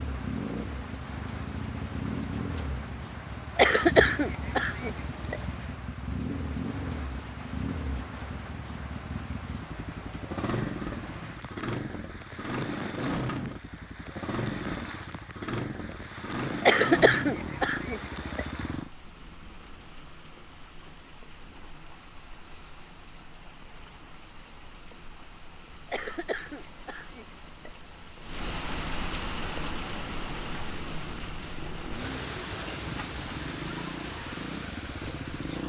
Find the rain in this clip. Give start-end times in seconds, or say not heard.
0.0-35.6.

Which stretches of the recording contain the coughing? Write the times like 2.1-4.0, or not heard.
3.5-5.4, 16.6-18.4, 25.9-27.7.